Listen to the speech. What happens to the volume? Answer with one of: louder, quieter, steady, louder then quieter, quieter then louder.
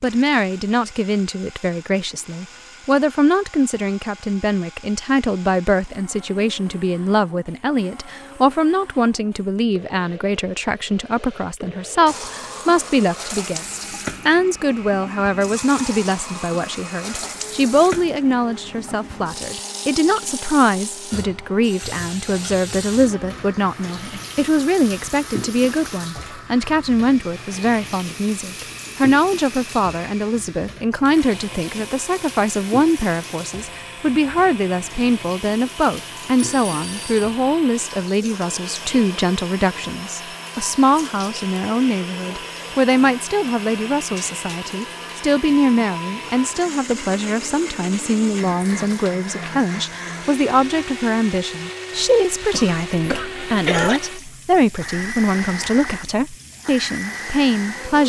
steady.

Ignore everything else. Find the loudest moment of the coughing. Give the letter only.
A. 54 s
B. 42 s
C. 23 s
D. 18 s
A.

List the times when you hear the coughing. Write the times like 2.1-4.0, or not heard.
52.5-54.0.